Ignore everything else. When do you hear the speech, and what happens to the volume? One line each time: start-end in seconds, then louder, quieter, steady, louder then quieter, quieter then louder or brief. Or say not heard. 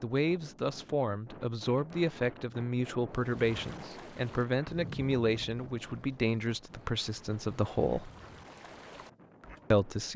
0.0-8.1 steady
9.7-10.1 brief.